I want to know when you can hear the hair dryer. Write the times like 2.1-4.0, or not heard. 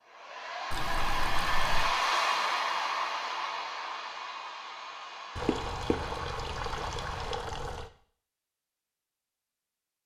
0.0-7.4.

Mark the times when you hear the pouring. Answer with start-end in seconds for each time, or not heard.
0.7-1.9, 5.3-7.8.